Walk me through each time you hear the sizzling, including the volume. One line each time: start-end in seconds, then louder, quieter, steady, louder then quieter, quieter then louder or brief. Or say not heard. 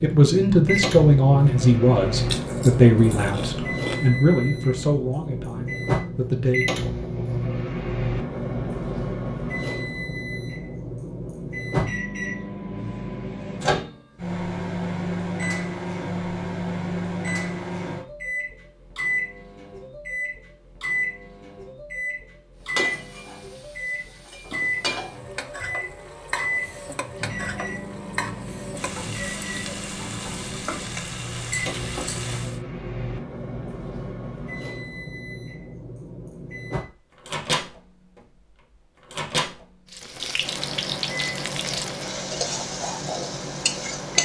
22.6-32.6 steady
39.9-44.2 steady.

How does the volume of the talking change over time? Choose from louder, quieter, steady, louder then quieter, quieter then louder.
quieter.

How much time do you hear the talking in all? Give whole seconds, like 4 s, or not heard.
7 s.